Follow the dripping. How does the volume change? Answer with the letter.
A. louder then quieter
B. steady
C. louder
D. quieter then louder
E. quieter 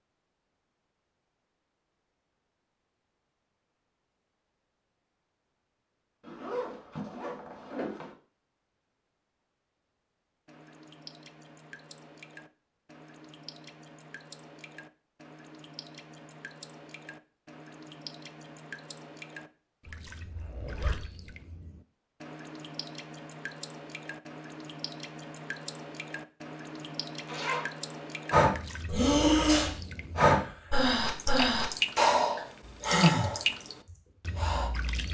C.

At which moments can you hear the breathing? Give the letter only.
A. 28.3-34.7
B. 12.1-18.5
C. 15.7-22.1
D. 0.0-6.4
A.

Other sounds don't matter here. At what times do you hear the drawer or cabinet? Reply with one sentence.
The drawer or cabinet can't be heard in this clip.